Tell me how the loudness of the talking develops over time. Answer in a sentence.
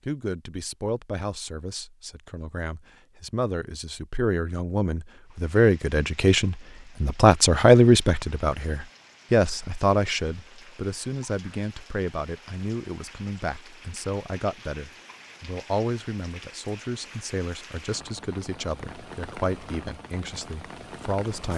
The loudness of the talking goes up, then down.